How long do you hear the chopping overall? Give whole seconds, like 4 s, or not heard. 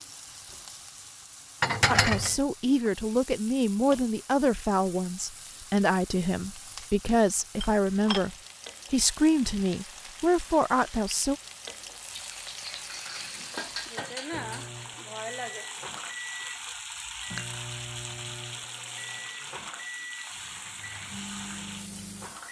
not heard.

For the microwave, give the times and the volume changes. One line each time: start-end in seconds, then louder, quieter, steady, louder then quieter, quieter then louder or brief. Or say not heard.
14.3-22.4 steady.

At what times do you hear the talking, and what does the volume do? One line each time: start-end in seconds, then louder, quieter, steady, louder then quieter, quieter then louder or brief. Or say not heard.
1.9-11.3 steady.